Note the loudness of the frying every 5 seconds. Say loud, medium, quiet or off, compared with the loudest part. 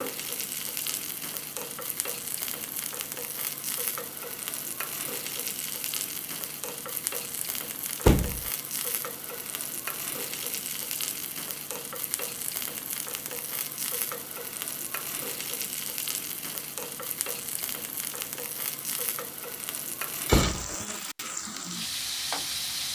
medium, medium, medium, medium, loud.